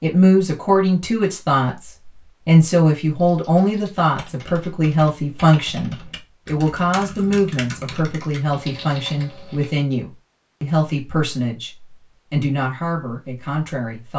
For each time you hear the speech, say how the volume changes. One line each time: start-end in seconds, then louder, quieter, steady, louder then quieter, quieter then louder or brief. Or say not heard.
0.0-14.1 quieter.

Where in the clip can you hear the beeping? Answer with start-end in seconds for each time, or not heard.
not heard.